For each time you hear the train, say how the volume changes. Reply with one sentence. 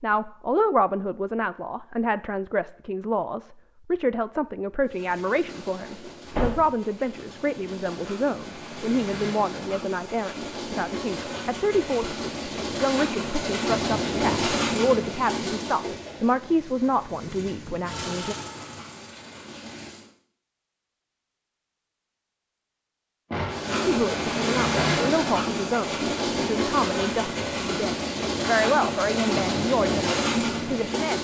You can hear the train from 4.8 to 20.1 s, getting louder then quieter; and from 23.4 to 31.1 s, at a steady volume.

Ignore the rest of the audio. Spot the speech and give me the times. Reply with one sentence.
The speech can be heard from 0.0 to 18.4 s and from 23.9 to 31.1 s.